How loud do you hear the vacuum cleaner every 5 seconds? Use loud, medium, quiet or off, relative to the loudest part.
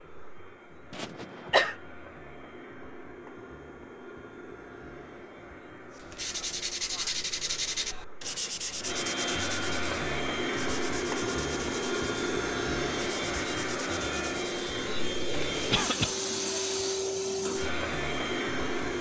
quiet, medium, loud, loud.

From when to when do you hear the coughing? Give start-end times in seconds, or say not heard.
0.9-1.8, 15.7-16.1.